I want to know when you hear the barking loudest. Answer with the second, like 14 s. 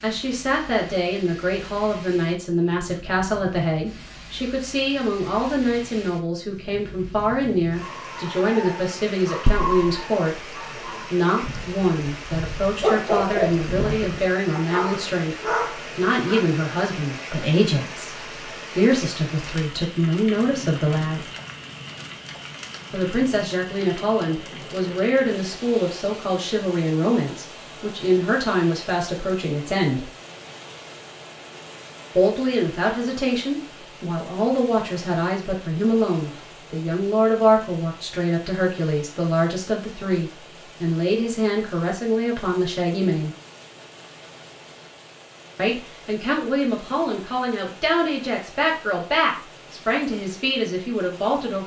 13 s.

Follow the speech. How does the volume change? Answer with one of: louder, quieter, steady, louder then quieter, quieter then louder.
steady.